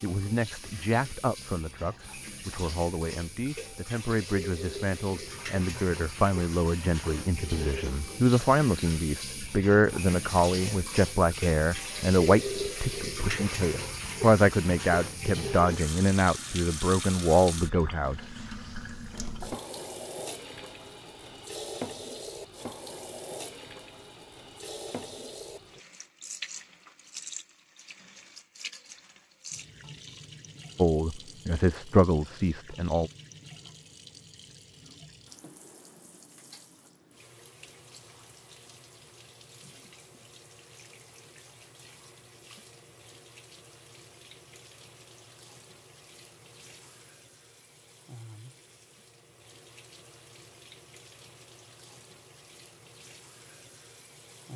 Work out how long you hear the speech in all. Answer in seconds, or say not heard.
21 s.